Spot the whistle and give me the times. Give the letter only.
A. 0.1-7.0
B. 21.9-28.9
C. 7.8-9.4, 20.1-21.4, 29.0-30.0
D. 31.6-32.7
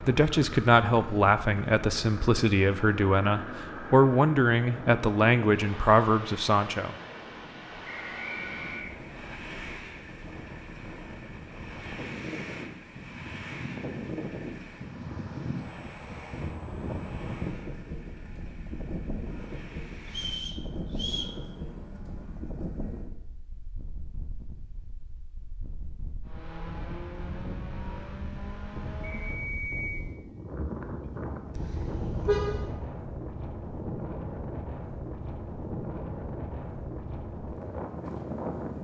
C.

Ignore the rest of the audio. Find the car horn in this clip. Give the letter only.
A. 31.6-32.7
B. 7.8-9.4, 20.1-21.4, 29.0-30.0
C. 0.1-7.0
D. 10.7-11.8
A.